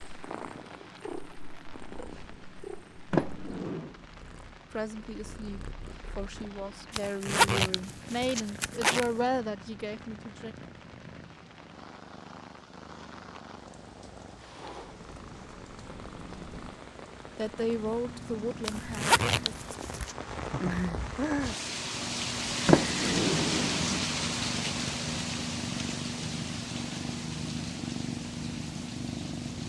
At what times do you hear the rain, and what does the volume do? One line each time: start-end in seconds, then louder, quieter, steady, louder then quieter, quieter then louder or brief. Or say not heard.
0.0-29.6 louder.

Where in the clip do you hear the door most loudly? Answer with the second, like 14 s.
23 s.